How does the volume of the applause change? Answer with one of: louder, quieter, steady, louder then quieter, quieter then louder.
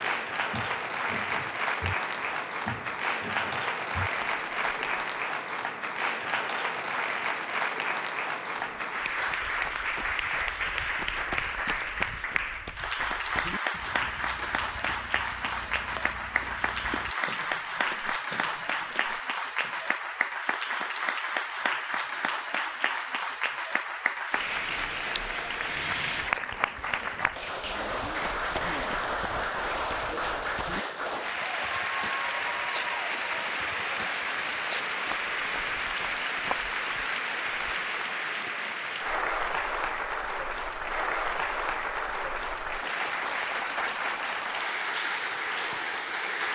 steady.